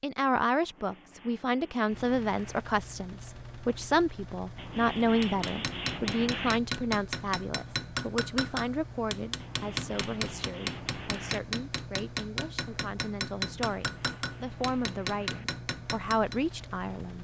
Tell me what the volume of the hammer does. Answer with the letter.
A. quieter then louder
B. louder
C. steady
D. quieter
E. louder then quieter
C.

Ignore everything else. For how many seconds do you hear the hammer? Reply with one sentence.
You can hear the hammer for 11 seconds altogether.